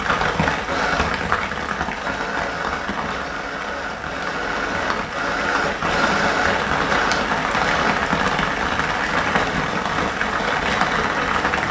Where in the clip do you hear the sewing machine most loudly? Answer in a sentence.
The volume of the sewing machine peaks at 6 seconds.